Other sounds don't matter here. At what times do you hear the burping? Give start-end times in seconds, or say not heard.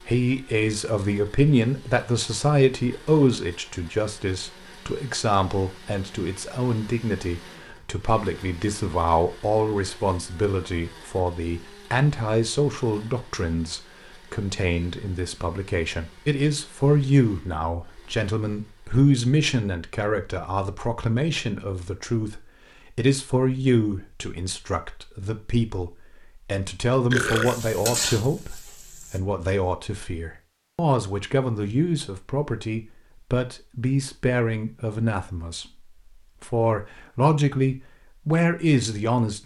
27.1-28.1.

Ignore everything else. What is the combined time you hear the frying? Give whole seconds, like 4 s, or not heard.
2 s.